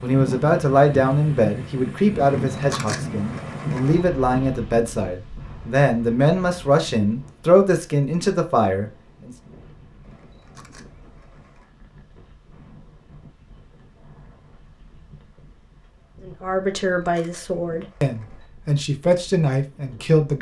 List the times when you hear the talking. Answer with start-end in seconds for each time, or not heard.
0.0-9.3, 16.2-20.3.